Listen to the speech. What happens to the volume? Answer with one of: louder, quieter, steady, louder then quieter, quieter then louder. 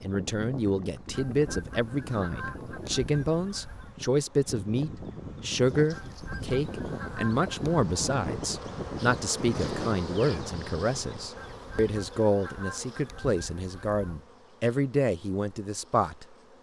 steady.